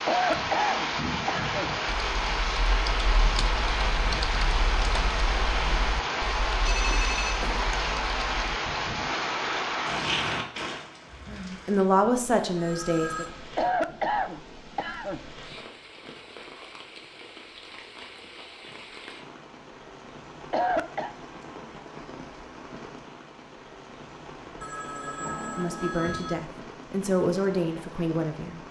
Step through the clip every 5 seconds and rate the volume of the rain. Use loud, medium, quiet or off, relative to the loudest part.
loud, loud, medium, quiet, quiet, quiet.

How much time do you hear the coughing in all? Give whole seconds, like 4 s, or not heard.
4 s.